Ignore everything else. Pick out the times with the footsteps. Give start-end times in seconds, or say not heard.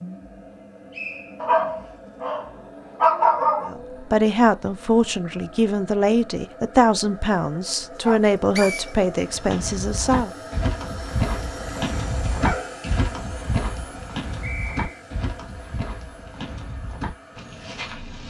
9.2-18.2.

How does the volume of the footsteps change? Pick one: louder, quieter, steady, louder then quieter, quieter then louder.
quieter.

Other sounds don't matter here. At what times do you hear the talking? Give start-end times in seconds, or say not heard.
3.6-10.3.